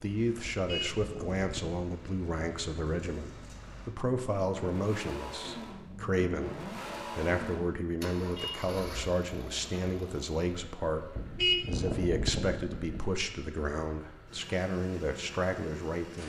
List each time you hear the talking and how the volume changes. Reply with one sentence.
The talking can be heard from 0.0 to 16.2 s, at a steady volume.